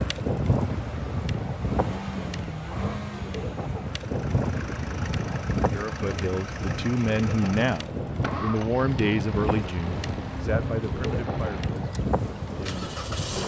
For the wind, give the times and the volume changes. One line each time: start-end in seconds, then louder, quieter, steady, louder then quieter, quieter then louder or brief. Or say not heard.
0.0-13.4 steady.